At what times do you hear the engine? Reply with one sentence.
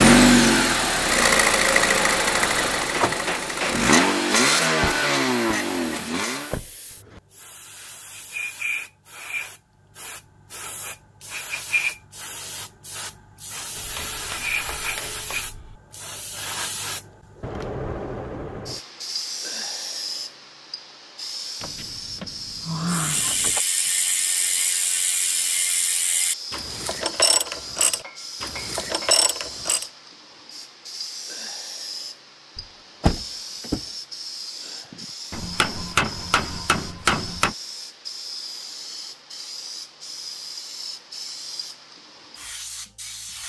You can hear the engine from 0.0 to 6.5 s.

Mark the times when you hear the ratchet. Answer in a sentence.
The ratchet can be heard from 22.9 to 29.9 s.